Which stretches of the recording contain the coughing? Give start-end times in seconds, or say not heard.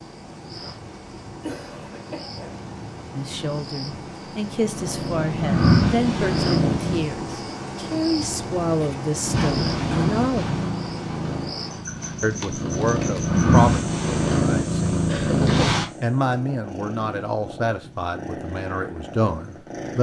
1.4-2.6, 8.8-10.8, 15.1-15.7.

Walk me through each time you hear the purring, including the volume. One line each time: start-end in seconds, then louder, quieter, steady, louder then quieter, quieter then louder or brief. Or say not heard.
0.0-7.0 louder
9.2-19.9 louder then quieter.